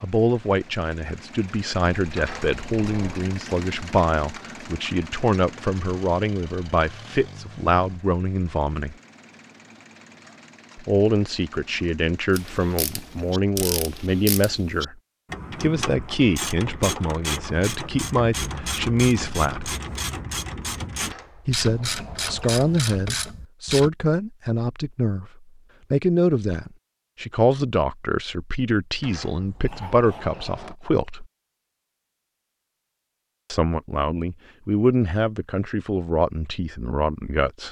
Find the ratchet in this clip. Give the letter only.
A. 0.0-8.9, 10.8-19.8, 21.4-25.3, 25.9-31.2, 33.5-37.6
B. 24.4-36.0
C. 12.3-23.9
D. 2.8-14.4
C.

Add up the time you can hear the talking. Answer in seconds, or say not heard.
31 s.